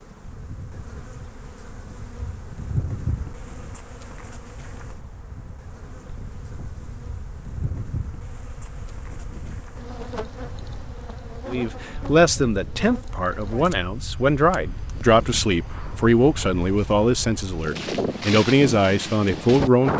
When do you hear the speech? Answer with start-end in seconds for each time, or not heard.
11.4-19.9.